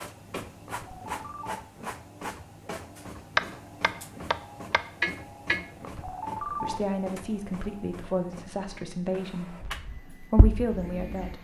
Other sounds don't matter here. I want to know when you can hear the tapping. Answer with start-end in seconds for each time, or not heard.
3.4-5.7, 9.6-11.3.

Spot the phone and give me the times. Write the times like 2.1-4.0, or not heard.
0.7-1.6, 5.8-6.8.